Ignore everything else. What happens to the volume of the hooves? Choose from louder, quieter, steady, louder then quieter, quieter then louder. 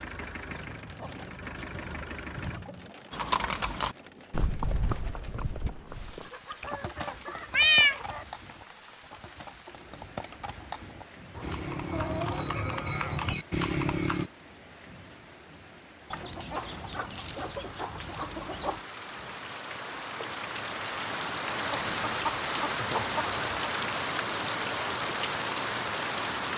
quieter then louder.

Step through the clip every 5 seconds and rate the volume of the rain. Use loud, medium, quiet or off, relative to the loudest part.
quiet, quiet, quiet, quiet, loud, loud.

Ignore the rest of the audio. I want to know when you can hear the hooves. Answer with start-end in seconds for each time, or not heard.
3.1-14.3.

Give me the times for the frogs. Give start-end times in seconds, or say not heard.
not heard.